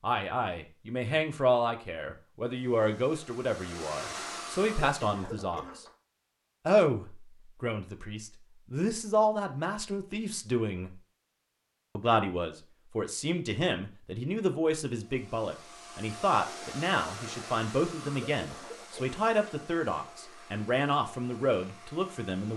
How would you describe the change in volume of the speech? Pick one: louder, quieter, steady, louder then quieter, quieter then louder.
steady.